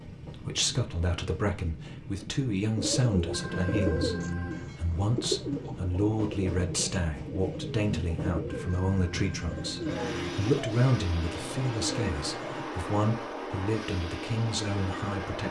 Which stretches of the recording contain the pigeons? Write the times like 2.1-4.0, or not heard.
2.8-12.7.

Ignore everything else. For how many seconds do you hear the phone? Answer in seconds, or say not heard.
3 s.